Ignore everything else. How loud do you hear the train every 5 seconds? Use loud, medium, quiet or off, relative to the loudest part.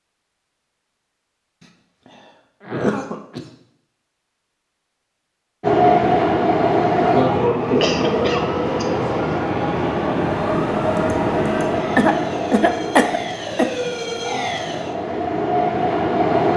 off, loud, medium, loud.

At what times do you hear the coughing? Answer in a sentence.
The coughing can be heard from 2.0 to 3.5 s, from 7.8 to 9.1 s and from 11.9 to 13.8 s.